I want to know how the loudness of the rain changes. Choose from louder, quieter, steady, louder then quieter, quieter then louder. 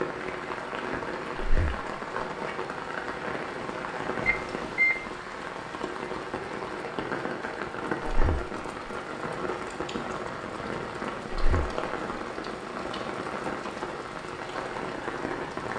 steady.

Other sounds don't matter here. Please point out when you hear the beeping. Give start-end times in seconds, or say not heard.
4.2-5.0.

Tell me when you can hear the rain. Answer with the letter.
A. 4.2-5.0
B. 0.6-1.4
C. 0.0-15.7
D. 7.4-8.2
C.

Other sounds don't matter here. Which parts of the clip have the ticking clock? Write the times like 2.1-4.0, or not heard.
not heard.